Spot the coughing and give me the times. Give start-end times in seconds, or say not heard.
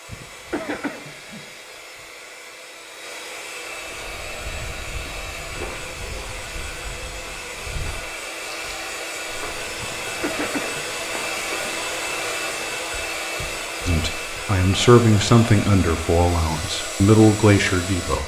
0.1-1.4, 9.8-10.8.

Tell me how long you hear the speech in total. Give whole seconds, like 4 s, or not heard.
4 s.